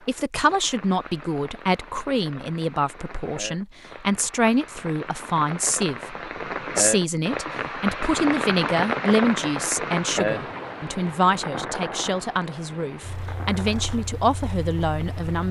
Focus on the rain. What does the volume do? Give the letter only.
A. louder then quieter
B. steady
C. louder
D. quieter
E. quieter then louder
A.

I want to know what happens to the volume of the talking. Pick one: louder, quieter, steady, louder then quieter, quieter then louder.
steady.